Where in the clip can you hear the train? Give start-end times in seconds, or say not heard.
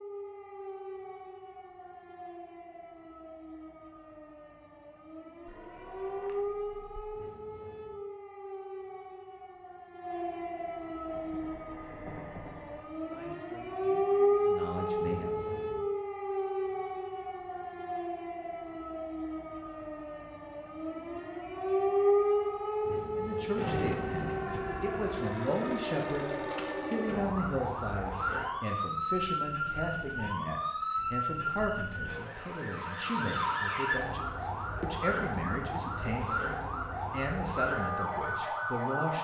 11.1-12.8.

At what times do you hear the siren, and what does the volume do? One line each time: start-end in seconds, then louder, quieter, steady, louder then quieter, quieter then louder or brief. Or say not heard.
0.0-39.1 louder.